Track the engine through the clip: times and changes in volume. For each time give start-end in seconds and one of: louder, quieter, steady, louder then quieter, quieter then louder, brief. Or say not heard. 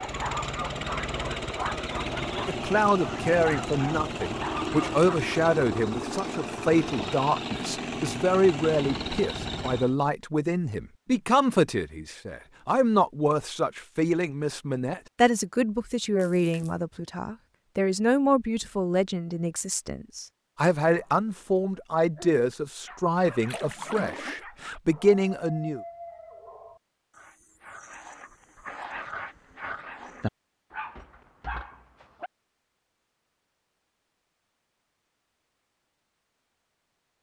0.0-9.9 steady.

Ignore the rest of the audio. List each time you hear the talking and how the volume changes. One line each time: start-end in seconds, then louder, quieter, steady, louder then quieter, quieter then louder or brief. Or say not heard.
2.5-25.8 steady.